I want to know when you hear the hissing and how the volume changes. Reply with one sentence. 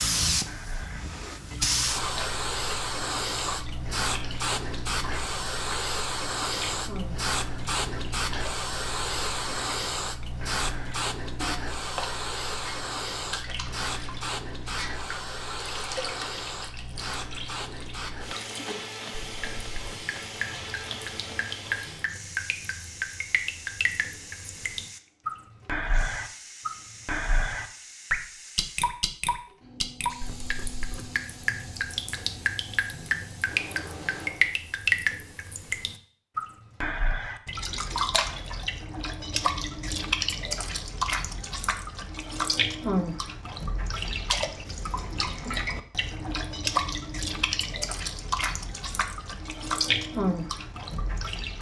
You can hear the hissing from 0.0 to 34.5 s, getting quieter.